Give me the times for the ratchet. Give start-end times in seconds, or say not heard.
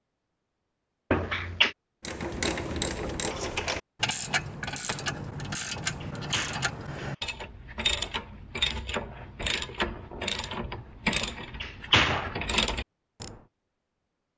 2.0-13.3.